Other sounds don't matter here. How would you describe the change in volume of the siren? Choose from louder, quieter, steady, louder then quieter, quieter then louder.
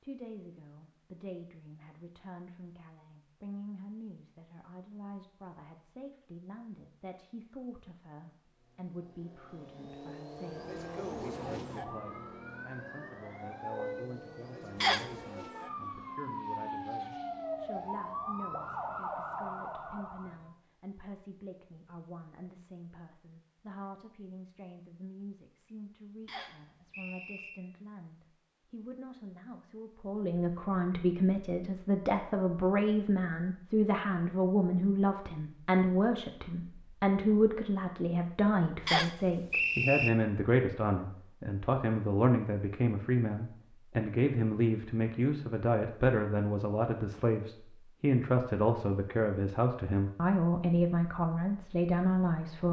louder.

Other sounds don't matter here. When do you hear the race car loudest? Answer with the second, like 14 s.
11 s.